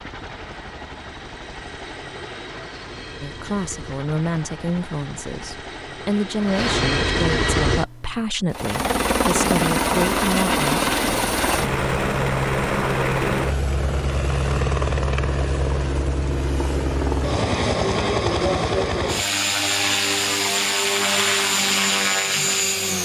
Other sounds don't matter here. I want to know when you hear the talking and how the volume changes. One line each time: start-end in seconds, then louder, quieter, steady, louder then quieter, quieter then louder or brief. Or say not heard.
3.2-10.8 steady.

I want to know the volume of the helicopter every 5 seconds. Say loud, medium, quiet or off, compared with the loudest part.
quiet, loud, loud, loud, loud.